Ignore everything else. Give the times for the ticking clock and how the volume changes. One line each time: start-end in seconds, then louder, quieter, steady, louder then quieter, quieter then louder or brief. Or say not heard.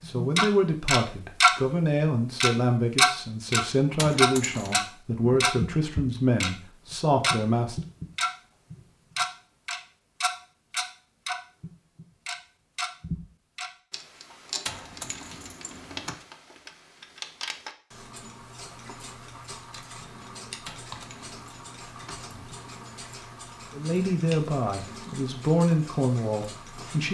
0.0-1.6 brief
2.4-27.0 quieter.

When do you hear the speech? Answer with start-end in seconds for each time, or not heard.
0.1-7.8, 23.7-27.0.